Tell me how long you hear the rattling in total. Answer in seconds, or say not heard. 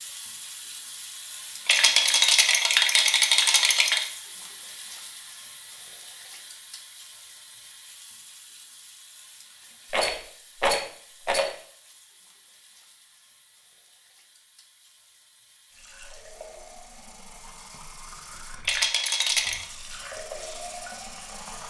5 s.